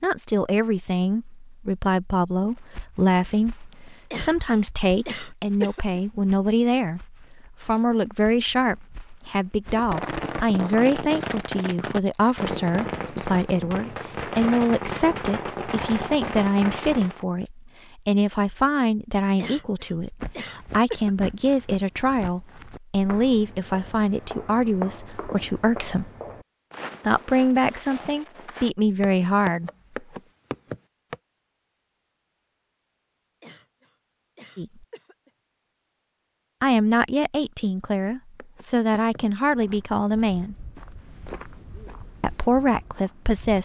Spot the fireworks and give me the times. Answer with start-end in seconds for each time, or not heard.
9.7-17.2.